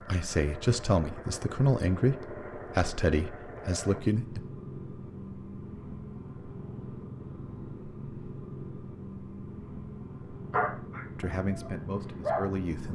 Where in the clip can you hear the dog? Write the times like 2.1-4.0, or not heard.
10.5-12.9.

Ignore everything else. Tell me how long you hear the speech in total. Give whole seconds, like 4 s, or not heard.
6 s.